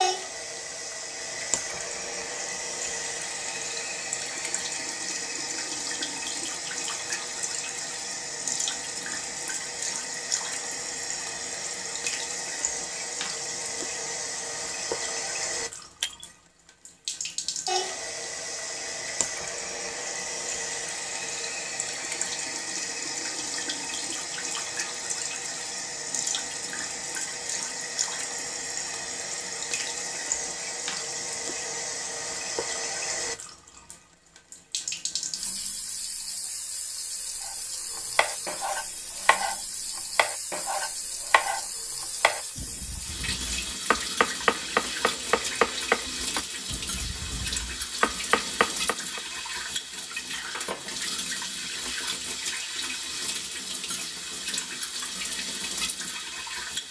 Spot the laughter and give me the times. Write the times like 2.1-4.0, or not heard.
not heard.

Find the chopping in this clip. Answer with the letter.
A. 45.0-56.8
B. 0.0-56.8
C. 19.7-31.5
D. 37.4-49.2
D.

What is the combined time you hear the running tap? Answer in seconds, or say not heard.
57 s.